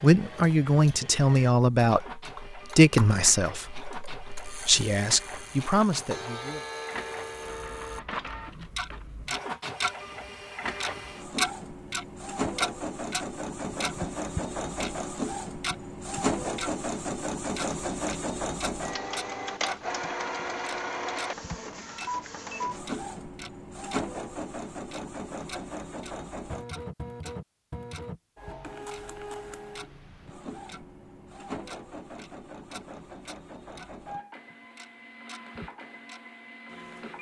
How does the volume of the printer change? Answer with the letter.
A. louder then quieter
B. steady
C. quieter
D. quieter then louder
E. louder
A.